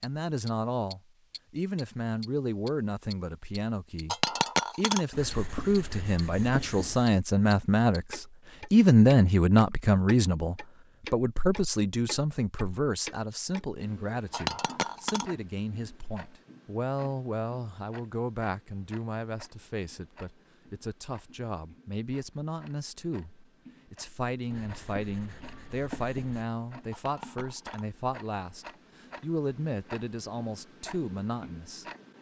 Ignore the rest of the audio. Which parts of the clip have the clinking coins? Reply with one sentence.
The clinking coins can be heard from 4.0 to 5.0 s, from 14.3 to 15.2 s and from 26.9 to 27.9 s.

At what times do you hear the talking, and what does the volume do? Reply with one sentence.
You can hear the talking from 0.0 to 31.9 s, getting louder then quieter.